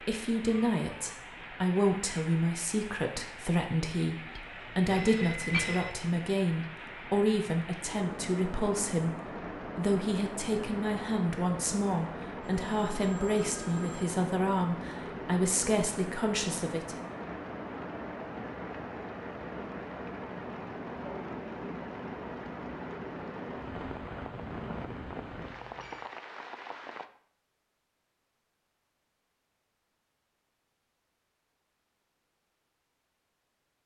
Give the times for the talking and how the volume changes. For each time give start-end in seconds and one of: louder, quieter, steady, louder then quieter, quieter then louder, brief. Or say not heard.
0.1-17.0 steady.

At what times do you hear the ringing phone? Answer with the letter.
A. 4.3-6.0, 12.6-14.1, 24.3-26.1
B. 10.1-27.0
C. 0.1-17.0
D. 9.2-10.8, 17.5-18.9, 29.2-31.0
A.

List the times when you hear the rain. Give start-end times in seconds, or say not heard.
0.0-27.1.